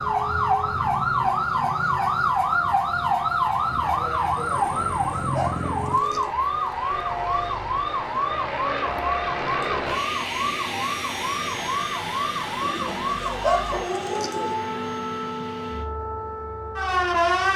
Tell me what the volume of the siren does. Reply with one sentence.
The volume of the siren goes down.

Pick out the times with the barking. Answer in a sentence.
You can't hear the barking here.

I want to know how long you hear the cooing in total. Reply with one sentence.
The cooing can be heard for 4 seconds in total.